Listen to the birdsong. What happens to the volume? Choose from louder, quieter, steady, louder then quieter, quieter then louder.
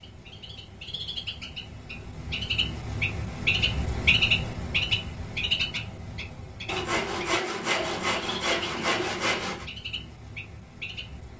louder then quieter.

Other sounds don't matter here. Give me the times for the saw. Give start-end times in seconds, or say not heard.
6.7-9.7.